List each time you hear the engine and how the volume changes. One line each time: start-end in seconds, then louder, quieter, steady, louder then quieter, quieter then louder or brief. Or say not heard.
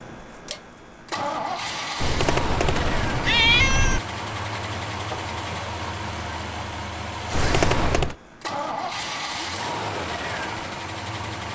0.0-11.4 steady.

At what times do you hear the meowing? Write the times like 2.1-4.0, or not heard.
2.0-4.0, 7.3-8.2.